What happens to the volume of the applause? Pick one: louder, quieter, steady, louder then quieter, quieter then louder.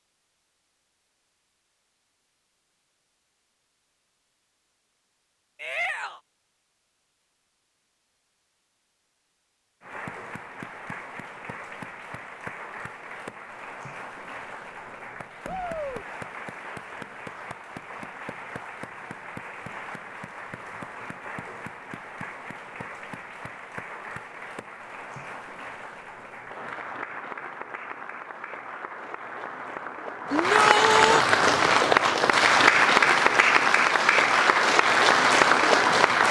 louder.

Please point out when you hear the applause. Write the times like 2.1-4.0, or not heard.
9.8-36.2.